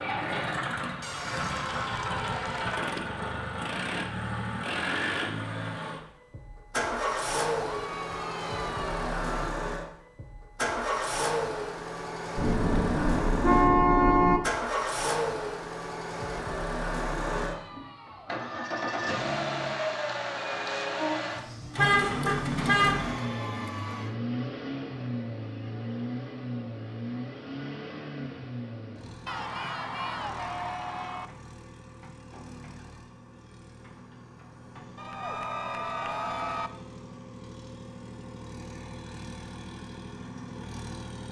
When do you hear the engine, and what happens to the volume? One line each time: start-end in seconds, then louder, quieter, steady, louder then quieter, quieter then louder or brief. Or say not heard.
0.0-41.2 quieter.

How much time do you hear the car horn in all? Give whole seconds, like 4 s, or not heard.
3 s.